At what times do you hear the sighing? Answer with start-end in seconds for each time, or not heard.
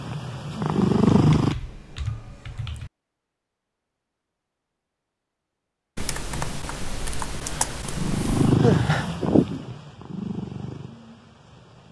8.6-9.7.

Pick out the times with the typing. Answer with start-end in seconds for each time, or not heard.
1.1-2.9, 6.0-8.6.